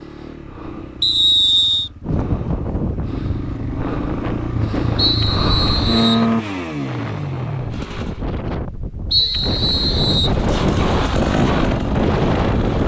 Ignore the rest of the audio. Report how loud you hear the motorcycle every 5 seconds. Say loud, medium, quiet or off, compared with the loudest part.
medium, loud, loud.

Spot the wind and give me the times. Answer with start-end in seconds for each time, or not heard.
2.0-12.8.